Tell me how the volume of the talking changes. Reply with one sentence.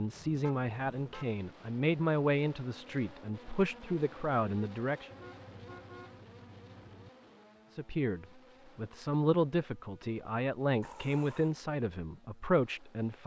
The loudness of the talking stays about the same.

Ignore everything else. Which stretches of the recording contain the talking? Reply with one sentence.
The talking can be heard from 0.0 to 5.1 s and from 7.7 to 13.2 s.